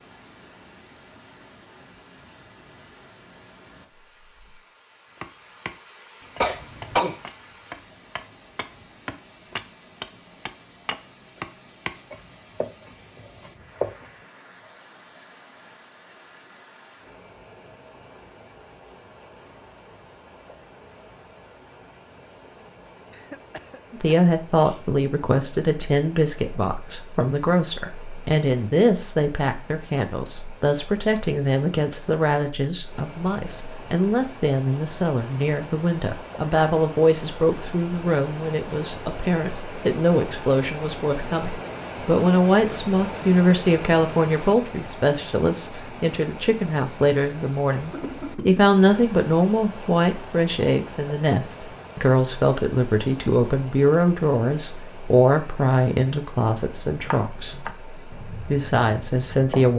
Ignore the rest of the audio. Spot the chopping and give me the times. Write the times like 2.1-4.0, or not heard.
5.2-14.1, 56.6-59.7.